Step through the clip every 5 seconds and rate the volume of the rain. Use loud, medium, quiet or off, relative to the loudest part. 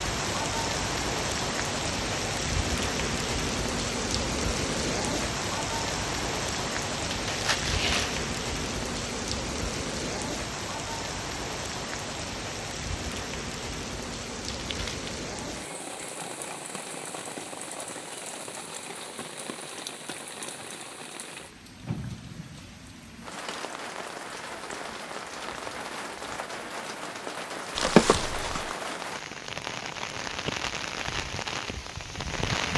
loud, loud, medium, medium, medium, medium, loud.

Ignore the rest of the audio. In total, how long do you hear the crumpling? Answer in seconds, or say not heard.
3 s.